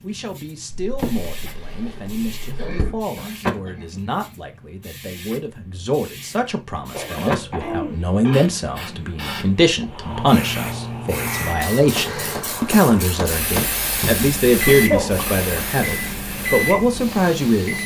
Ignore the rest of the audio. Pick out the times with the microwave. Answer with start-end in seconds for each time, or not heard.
10.1-17.8.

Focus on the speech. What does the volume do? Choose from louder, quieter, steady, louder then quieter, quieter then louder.
louder.